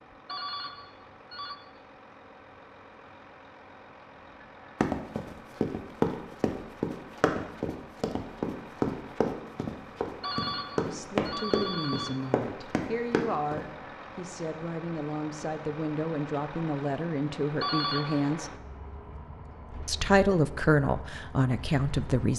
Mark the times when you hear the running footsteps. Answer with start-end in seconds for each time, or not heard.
4.8-13.7.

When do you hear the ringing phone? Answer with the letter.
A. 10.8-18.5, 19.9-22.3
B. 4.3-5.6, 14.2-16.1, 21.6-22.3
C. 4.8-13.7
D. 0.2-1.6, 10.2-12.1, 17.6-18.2
D.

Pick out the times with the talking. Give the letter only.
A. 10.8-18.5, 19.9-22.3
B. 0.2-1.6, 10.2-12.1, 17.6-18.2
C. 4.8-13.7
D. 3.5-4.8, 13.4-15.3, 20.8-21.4
A.